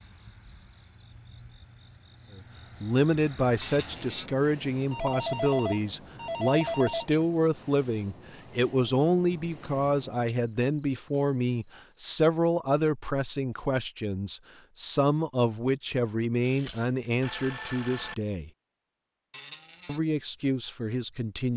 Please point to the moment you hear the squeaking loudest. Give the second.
4 s.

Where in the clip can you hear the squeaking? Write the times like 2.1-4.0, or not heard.
3.6-4.3, 19.3-20.0.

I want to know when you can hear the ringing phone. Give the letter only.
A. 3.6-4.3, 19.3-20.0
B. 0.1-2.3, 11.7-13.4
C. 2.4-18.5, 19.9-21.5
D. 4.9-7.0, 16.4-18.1
D.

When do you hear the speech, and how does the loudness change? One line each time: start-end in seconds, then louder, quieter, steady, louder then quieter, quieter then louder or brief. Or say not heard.
2.4-18.5 steady
19.9-21.5 brief.